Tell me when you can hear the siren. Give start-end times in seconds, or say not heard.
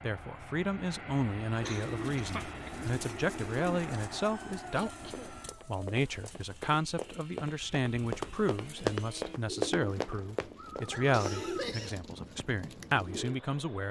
not heard.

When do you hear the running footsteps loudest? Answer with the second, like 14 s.
9 s.